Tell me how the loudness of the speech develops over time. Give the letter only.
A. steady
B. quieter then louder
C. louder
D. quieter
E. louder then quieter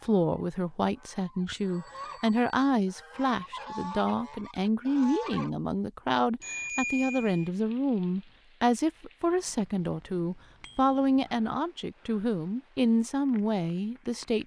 A.